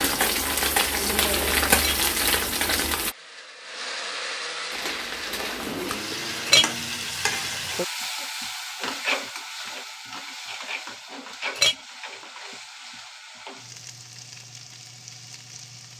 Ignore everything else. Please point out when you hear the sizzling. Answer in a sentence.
The sizzling can be heard from 0.0 to 3.1 s and from 4.7 to 15.9 s.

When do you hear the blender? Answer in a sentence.
You can hear the blender from 2.9 to 7.2 s.